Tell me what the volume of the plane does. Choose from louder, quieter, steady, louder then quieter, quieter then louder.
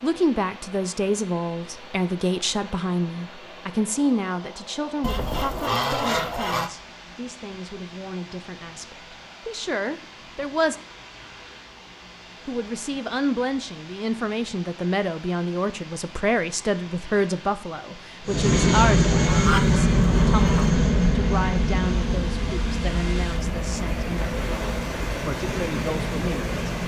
quieter.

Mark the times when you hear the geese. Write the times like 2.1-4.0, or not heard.
5.0-6.7, 19.2-20.4.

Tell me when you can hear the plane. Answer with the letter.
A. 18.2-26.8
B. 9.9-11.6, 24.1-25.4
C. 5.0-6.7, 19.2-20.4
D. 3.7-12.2
A.